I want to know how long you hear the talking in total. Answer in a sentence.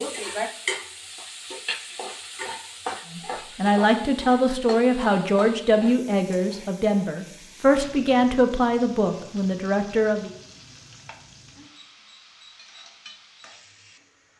You can hear the talking for 7 seconds altogether.